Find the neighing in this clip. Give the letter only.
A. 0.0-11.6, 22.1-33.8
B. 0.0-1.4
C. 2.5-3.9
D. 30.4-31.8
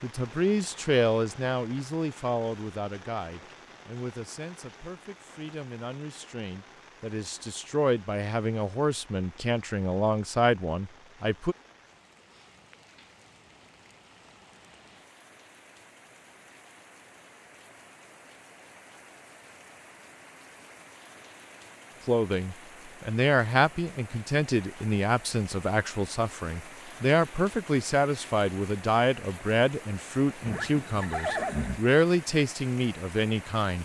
D.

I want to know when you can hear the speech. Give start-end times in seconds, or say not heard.
0.0-11.6, 22.1-33.8.